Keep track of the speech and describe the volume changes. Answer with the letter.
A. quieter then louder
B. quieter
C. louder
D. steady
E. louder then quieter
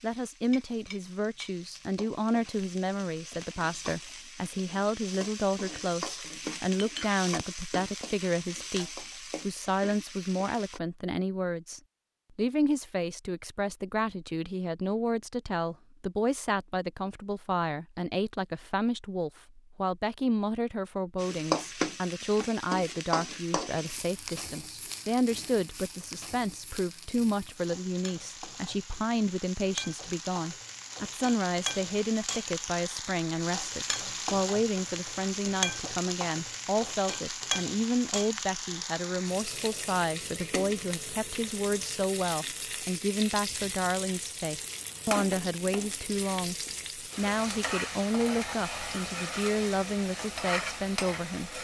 D.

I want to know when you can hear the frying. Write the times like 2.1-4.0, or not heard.
0.0-10.8, 21.1-51.5.